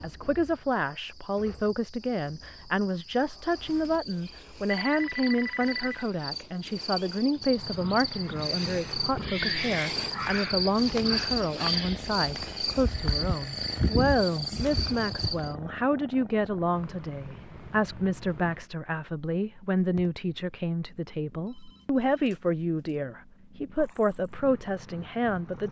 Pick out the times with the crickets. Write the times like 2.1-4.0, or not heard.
0.0-15.6.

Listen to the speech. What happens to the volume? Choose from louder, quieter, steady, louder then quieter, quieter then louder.
steady.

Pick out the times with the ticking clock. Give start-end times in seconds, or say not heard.
not heard.